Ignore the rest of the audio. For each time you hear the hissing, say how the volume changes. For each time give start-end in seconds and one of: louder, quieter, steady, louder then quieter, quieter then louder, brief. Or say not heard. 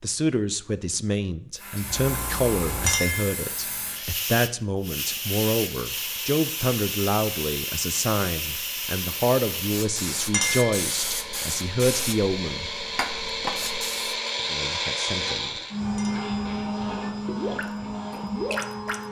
1.6-14.2 steady.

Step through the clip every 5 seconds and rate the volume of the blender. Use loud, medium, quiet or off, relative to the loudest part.
quiet, quiet, loud, loud.